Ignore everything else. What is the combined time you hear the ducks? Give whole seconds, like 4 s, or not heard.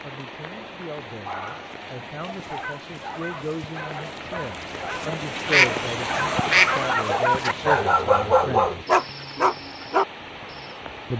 2 s.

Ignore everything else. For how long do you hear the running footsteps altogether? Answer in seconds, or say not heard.
not heard.